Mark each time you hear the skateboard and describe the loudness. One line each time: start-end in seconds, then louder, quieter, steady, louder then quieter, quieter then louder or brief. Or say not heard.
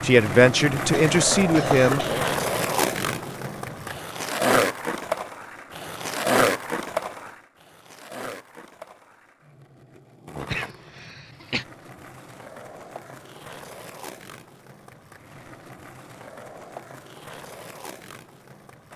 0.0-18.9 quieter.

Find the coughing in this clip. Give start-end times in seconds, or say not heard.
0.8-2.3, 10.4-11.7.